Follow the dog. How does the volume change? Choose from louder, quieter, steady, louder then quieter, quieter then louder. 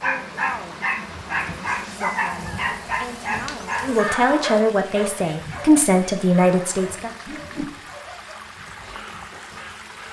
quieter.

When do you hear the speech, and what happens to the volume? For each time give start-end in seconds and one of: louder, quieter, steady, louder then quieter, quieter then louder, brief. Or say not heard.
0.0-7.1 louder.